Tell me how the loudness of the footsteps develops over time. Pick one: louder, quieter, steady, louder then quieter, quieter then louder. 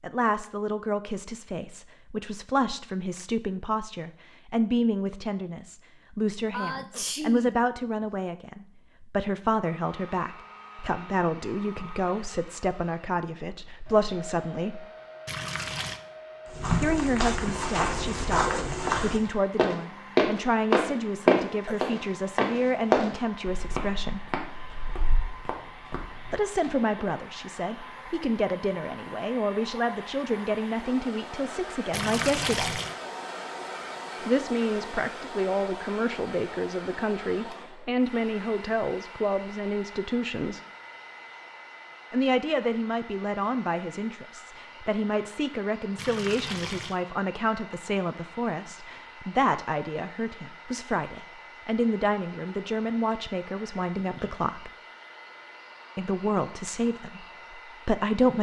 louder then quieter.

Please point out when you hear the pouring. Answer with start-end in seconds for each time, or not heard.
15.2-16.0, 31.9-33.0, 46.0-47.0.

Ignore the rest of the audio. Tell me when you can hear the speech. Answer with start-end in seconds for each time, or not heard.
0.0-14.8, 16.8-24.2, 26.3-32.8, 34.2-40.6, 42.1-54.7, 56.0-58.3.